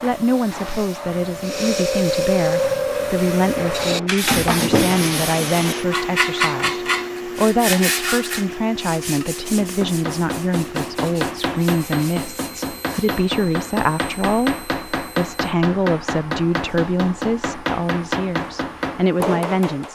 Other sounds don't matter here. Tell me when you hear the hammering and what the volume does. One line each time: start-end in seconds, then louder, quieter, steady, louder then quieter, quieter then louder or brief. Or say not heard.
9.1-19.9 steady.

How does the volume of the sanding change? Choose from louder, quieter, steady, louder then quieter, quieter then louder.
quieter.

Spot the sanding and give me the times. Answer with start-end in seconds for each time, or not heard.
1.4-13.2.